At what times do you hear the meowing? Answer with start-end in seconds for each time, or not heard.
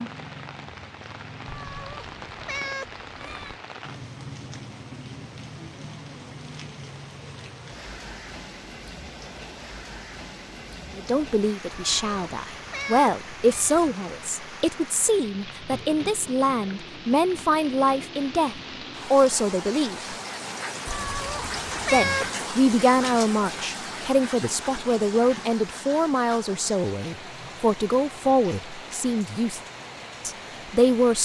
1.4-3.6, 11.7-13.9, 20.9-22.3.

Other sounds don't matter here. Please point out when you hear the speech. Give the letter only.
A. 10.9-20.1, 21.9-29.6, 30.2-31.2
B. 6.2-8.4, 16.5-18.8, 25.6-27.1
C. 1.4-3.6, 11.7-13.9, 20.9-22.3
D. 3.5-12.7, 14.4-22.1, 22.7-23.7
A.